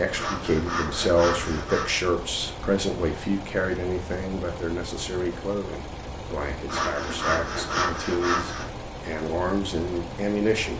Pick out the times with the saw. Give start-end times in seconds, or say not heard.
0.1-1.9, 6.7-8.7.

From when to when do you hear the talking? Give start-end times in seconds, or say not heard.
0.0-10.7.